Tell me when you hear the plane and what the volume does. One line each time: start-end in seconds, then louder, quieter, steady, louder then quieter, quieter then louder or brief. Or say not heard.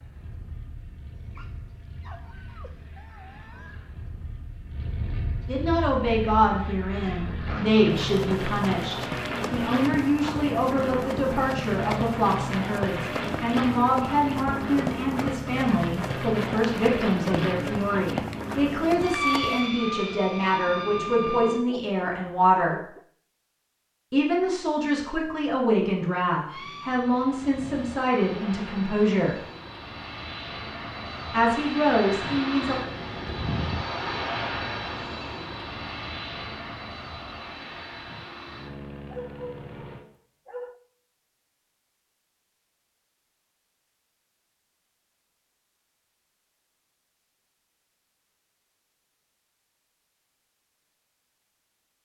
0.0-21.6 louder
26.4-40.0 louder then quieter.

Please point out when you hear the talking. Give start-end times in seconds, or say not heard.
5.5-22.8, 24.1-29.4, 31.3-32.8.